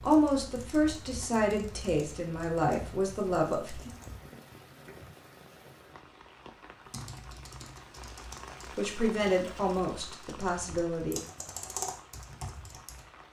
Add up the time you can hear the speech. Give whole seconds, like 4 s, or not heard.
6 s.